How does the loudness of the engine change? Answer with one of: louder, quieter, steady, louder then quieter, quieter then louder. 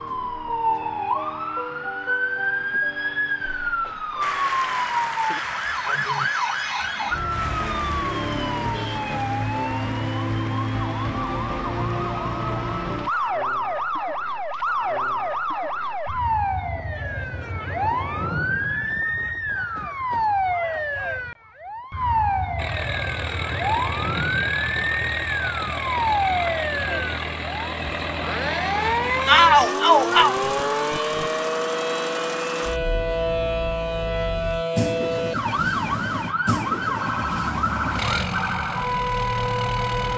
steady.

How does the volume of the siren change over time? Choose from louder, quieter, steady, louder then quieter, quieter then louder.
steady.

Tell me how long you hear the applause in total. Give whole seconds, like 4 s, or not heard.
9 s.